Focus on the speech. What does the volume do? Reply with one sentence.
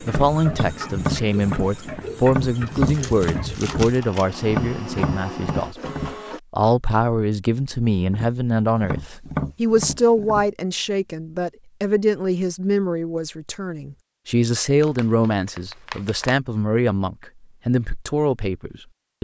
The volume of the speech stays about the same.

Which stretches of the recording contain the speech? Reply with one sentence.
The speech can be heard from 0.0 to 5.9 s and from 6.5 to 19.1 s.